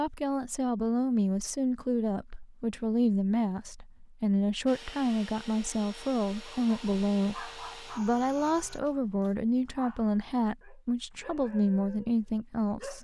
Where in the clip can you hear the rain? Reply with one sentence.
You can't hear the rain here.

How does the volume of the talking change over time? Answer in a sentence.
The volume of the talking stays about the same.